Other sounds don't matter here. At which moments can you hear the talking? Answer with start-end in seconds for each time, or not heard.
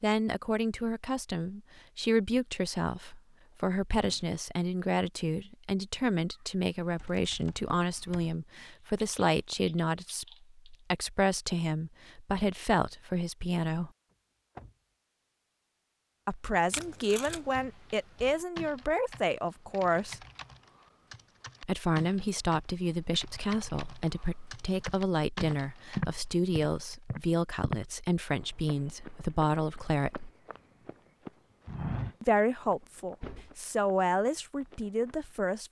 0.0-13.9, 16.2-20.2, 21.6-30.3, 32.2-35.6.